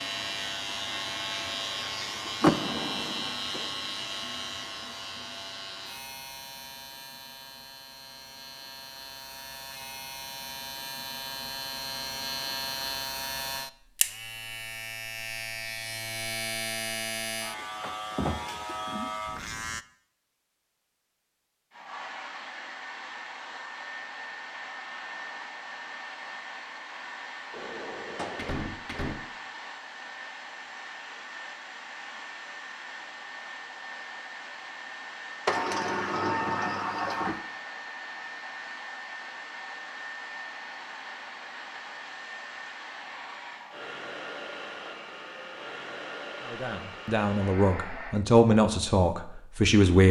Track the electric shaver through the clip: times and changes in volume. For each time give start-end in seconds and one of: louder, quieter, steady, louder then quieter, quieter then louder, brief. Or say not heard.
0.0-19.9 quieter then louder.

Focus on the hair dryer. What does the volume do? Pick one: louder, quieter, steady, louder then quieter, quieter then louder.
steady.